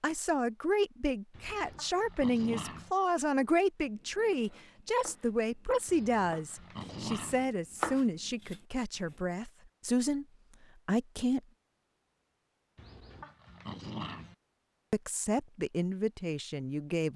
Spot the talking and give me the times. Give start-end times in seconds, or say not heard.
0.0-10.2, 10.8-11.4, 14.9-17.1.